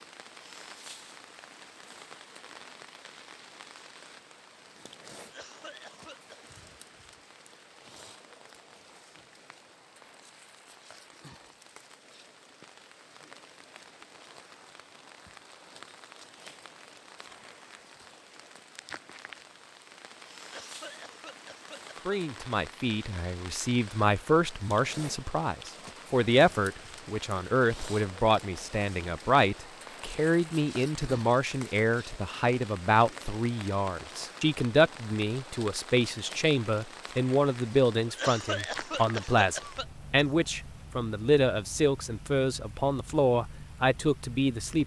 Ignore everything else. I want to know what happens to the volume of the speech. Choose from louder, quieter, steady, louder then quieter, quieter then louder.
steady.